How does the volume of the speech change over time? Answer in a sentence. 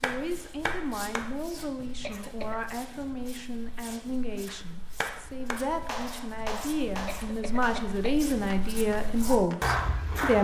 The volume of the speech goes up.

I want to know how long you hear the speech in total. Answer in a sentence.
You can hear the speech for 10 seconds altogether.